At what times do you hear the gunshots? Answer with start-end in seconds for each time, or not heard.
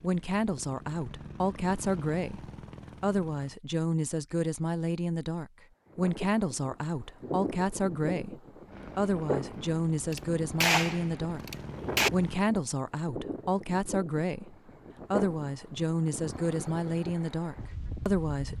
10.1-12.1.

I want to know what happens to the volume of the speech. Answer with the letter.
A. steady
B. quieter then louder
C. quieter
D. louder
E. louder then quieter
A.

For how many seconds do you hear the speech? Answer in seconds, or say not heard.
18 s.